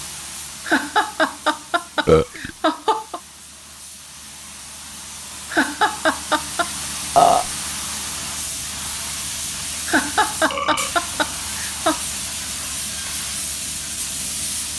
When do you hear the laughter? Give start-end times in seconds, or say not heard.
0.7-3.2, 5.5-6.8, 9.8-12.0.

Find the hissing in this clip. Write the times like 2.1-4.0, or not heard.
0.0-14.7.